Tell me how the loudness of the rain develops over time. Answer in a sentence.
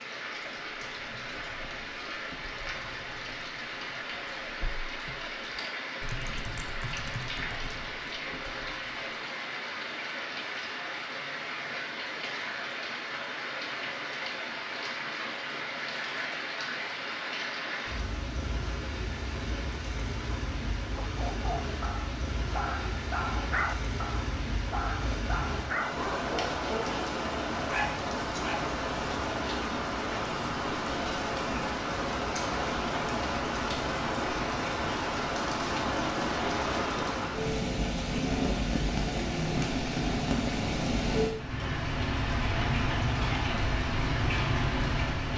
The volume of the rain goes up.